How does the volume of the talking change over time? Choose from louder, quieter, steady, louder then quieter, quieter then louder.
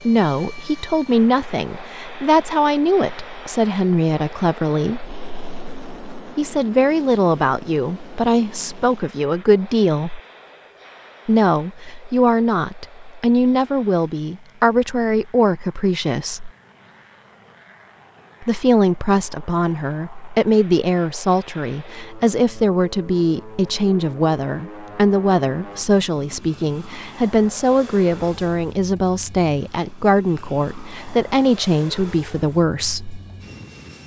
steady.